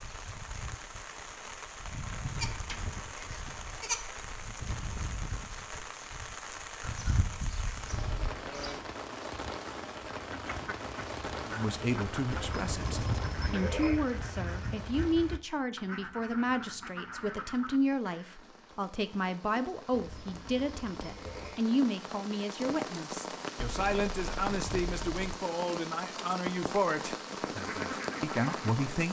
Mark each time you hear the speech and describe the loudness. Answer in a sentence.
You can hear the speech from 11.4 to 29.0 s, at a steady volume.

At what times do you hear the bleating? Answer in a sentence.
You can hear the bleating from 2.4 to 4.0 s, from 6.8 to 8.8 s, from 12.3 to 14.0 s, from 19.9 to 21.6 s and from 23.6 to 25.4 s.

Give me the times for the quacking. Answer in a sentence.
The quacking can be heard from 10.2 to 18.4 s and from 27.4 to 29.0 s.